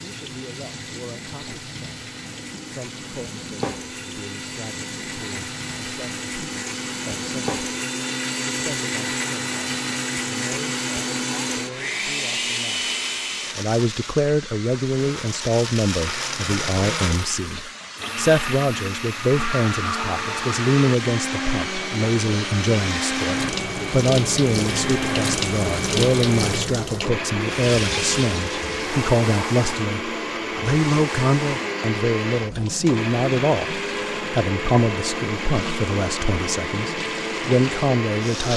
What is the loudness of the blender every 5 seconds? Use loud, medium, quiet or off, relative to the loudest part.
medium, loud, loud, loud, loud, loud, loud, loud.